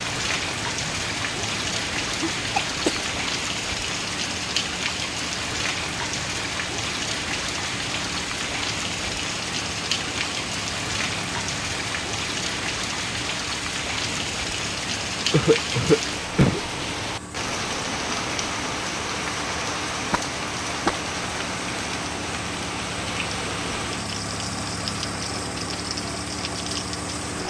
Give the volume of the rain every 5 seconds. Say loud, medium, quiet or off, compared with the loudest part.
loud, loud, loud, loud, loud, medium.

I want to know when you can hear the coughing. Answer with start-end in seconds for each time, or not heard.
2.1-3.1, 15.3-16.6, 20.1-20.9.